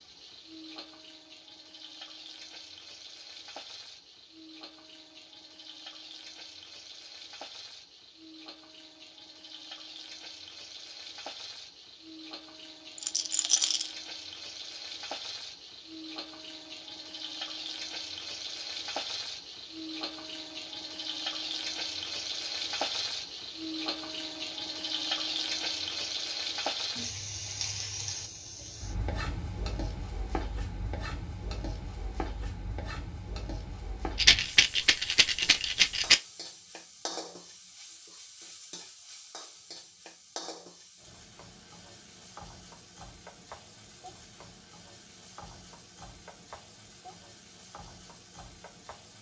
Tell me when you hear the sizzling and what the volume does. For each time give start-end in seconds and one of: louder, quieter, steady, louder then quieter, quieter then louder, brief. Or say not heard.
0.0-49.1 louder then quieter.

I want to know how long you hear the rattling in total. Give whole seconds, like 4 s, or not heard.
3 s.